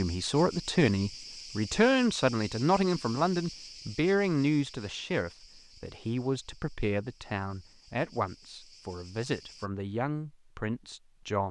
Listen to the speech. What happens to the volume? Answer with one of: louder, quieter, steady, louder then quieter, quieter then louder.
quieter.